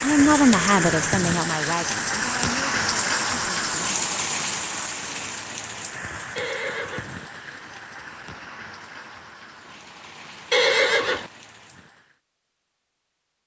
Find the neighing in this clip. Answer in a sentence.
The neighing can be heard from 0.1 to 1.2 s, from 6.3 to 7.1 s and from 10.5 to 11.3 s.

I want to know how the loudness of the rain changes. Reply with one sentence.
The loudness of the rain goes down.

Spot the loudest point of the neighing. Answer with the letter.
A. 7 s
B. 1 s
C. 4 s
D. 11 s
D.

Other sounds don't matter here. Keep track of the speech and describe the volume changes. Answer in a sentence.
The volume of the speech goes down.